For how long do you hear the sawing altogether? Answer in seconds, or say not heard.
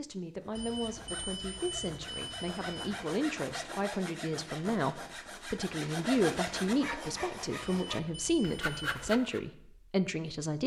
9 s.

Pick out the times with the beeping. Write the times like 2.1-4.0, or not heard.
0.6-3.1, 7.6-8.9.